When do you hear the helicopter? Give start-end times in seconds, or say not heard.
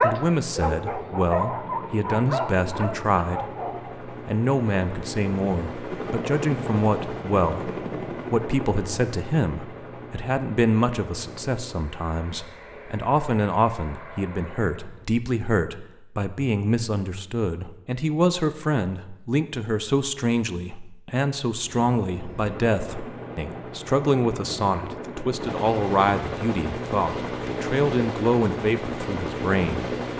0.2-15.1, 21.5-30.1.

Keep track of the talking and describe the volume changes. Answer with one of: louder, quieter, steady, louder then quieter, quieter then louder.
steady.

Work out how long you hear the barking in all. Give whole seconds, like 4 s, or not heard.
4 s.